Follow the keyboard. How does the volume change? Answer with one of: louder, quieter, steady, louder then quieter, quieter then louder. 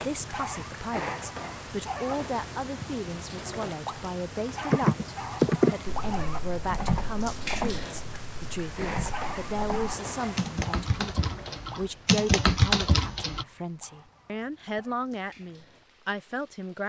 quieter then louder.